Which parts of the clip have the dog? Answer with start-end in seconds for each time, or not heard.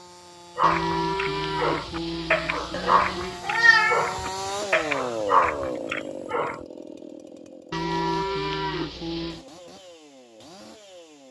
0.6-6.6.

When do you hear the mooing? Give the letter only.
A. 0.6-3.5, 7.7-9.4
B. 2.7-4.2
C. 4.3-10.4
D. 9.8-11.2
A.